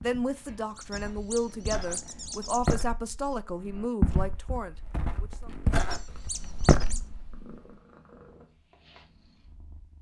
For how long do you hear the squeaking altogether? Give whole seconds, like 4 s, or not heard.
3 s.